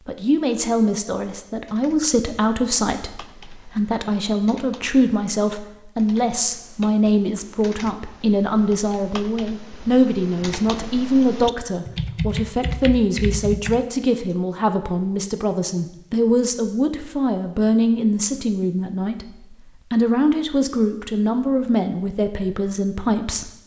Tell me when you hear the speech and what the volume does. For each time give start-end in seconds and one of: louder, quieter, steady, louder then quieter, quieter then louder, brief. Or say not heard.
0.1-23.5 steady.